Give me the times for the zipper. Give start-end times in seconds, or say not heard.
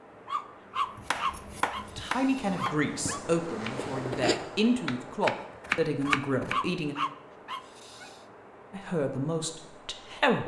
3.8-4.5.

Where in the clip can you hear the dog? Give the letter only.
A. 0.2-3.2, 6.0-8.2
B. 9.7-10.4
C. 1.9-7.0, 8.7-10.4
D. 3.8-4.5
A.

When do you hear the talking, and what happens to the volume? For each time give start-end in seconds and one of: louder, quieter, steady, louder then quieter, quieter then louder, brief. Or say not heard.
1.9-7.0 steady
8.7-10.4 brief.